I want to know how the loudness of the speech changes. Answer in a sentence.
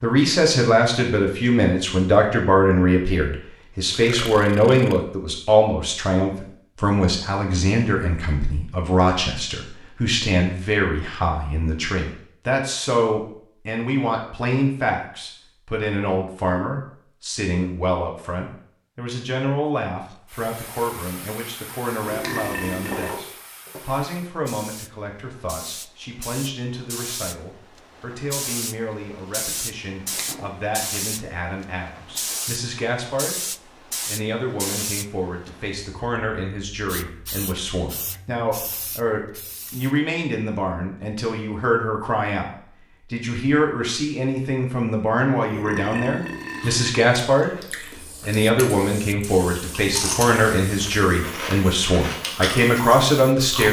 The volume of the speech goes down, then up.